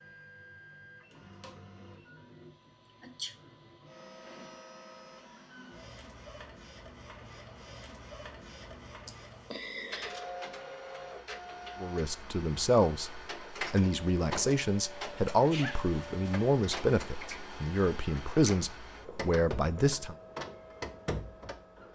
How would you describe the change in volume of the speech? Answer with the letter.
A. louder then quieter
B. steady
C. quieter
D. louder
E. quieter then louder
B.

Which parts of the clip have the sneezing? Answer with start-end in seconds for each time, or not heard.
2.9-3.4, 9.1-10.2, 15.1-15.8.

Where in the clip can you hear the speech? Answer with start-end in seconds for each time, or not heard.
11.8-20.1.